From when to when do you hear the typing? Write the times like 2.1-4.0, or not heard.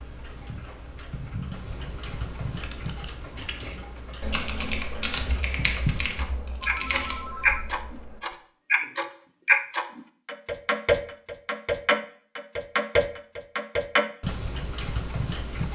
2.6-8.3.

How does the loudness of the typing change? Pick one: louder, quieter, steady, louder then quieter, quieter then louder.
louder then quieter.